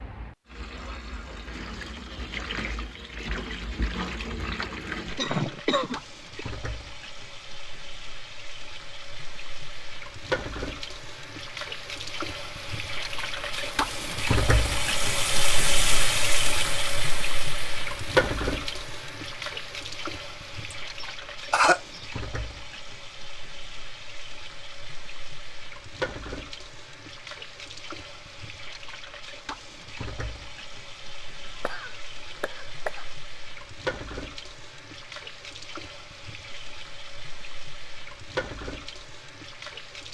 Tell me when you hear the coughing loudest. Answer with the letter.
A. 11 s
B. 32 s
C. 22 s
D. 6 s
C.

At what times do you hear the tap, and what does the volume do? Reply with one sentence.
The tap can be heard from 0.0 to 40.1 s, getting louder then quieter.